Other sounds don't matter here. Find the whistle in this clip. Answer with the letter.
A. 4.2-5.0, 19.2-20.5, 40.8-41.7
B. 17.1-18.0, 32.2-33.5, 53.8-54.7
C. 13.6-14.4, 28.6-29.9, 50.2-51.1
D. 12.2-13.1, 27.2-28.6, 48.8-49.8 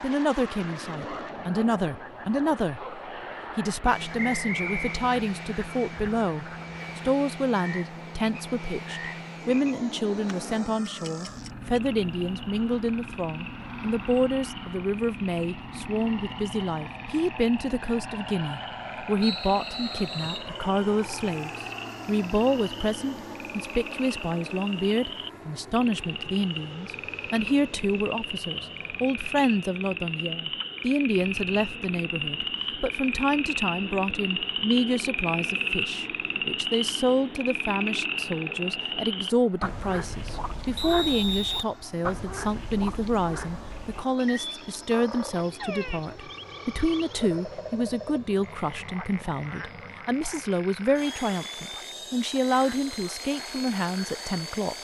A.